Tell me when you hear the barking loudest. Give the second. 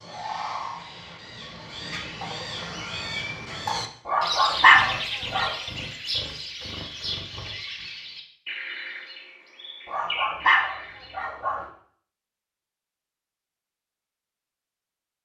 5 s.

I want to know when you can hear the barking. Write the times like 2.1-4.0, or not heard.
4.0-5.5, 9.8-11.7.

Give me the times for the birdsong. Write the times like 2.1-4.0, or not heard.
0.0-11.2.